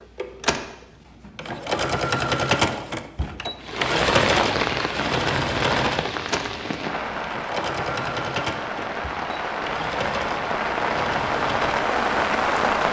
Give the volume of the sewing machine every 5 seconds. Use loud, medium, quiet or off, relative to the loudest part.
loud, loud, medium.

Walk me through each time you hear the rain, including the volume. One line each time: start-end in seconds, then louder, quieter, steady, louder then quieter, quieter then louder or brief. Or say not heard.
3.6-12.8 quieter then louder.